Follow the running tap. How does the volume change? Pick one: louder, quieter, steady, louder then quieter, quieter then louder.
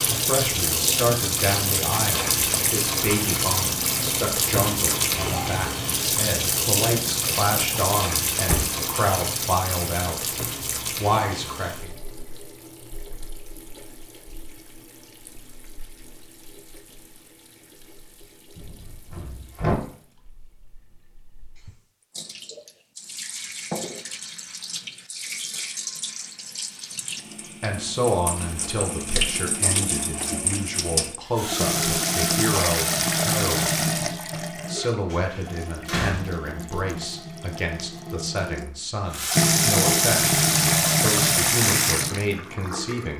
quieter then louder.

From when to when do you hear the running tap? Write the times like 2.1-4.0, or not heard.
0.0-43.1.